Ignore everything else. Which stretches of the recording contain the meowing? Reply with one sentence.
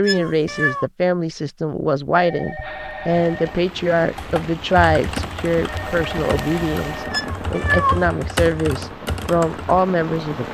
You can hear the meowing from 0.0 to 0.8 s and from 7.1 to 8.1 s.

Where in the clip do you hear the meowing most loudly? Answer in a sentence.
The volume of the meowing peaks at 8 seconds.